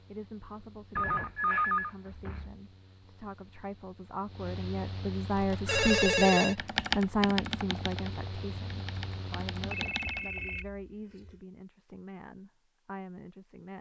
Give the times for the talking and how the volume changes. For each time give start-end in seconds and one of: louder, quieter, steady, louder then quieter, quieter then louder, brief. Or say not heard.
0.1-13.7 louder then quieter.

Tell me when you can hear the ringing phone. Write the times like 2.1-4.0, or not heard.
0.9-2.5, 5.7-6.5, 9.7-11.4.